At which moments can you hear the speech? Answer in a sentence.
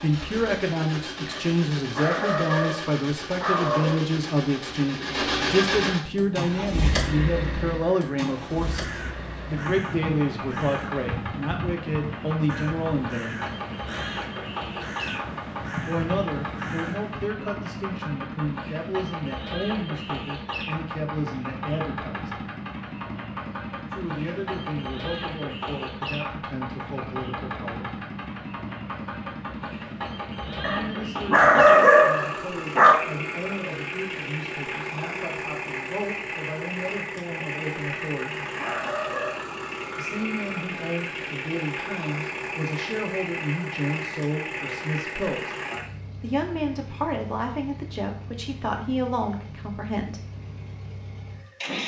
You can hear the speech from 0.0 to 13.4 s, from 15.8 to 22.4 s, from 23.9 to 27.9 s, from 30.6 to 38.5 s, from 40.0 to 45.5 s and from 46.2 to 50.2 s.